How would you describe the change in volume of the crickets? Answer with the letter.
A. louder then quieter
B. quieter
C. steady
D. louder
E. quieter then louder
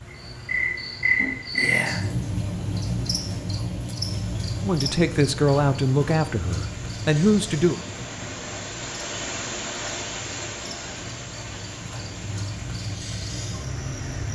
E.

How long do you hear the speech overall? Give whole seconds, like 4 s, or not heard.
3 s.